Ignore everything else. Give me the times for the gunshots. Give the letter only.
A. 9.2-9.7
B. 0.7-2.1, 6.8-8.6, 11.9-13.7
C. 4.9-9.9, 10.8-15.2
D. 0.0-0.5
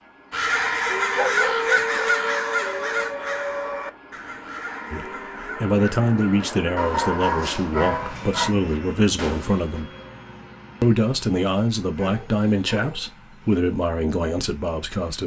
A.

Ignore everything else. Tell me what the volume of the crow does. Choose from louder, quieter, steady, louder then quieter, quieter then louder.
quieter.